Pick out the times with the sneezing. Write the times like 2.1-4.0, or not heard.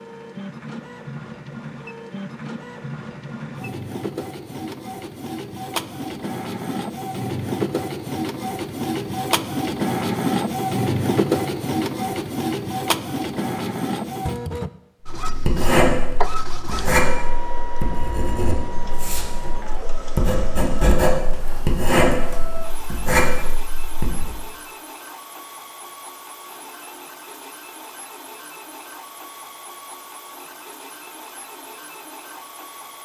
not heard.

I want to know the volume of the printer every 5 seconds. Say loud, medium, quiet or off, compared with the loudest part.
medium, loud, loud, medium, quiet, quiet, quiet.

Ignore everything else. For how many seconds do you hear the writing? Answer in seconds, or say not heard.
9 s.